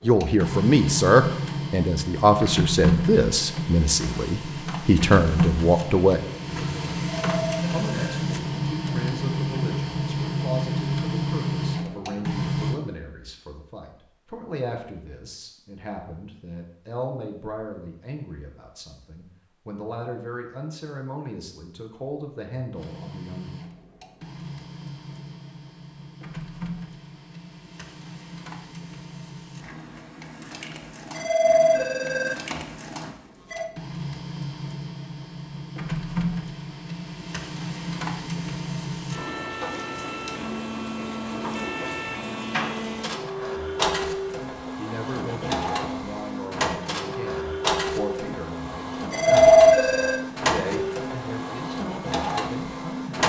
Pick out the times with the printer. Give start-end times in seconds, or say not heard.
0.0-12.8, 22.8-53.2.